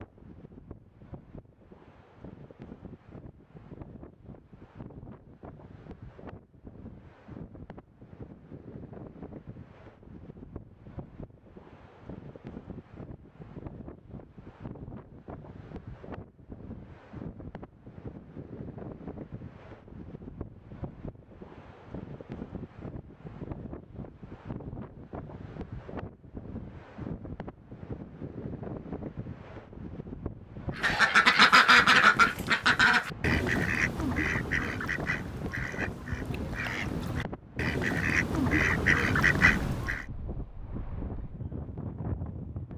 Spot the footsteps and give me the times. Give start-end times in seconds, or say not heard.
not heard.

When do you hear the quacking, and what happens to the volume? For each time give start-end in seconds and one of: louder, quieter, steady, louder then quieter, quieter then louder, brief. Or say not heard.
30.8-40.0 quieter then louder.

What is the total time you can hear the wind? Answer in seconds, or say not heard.
43 s.